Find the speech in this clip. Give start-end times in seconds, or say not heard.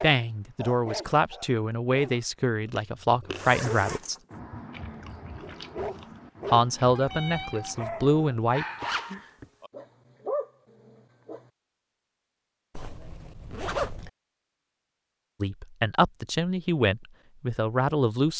0.0-4.2, 6.5-8.7, 15.4-18.3.